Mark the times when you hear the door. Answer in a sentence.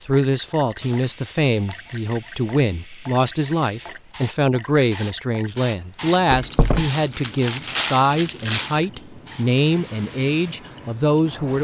You can hear the door from 6.2 to 6.9 s.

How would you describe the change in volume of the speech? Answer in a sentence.
The volume of the speech stays about the same.